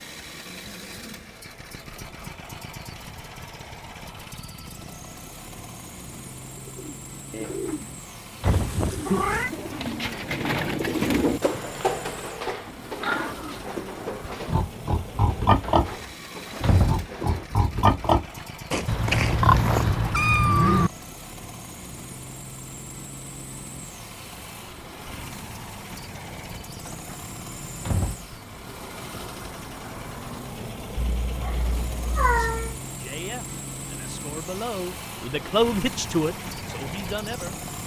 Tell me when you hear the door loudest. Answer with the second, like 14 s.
17 s.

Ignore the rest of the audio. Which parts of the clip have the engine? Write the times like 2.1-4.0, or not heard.
0.0-37.8.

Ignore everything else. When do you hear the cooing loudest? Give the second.
11 s.